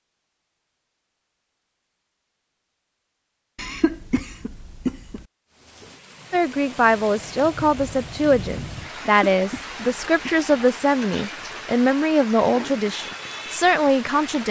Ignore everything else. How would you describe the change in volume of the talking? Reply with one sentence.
The loudness of the talking stays about the same.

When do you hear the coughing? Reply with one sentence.
The coughing can be heard from 3.5 to 5.2 s and from 8.9 to 10.5 s.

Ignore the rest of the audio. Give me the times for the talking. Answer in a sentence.
You can hear the talking from 6.3 to 14.4 s.